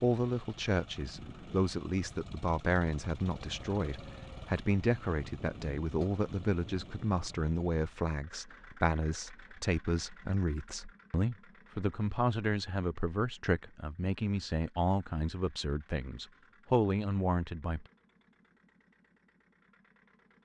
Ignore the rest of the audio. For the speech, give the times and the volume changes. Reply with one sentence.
You can hear the speech from 0.0 to 17.9 s, at a steady volume.